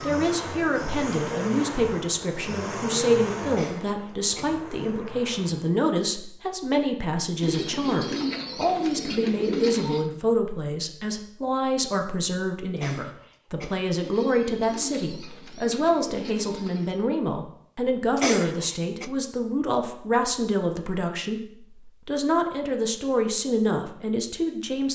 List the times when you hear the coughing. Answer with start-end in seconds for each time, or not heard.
3.5-5.0, 12.8-13.8, 18.1-19.1.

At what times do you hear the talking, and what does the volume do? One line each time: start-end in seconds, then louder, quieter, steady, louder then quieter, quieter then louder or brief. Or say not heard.
0.0-24.9 steady.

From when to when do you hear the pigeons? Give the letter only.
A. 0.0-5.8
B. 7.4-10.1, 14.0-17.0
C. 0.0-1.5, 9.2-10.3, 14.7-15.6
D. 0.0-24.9
B.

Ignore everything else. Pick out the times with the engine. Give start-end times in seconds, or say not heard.
0.0-5.8.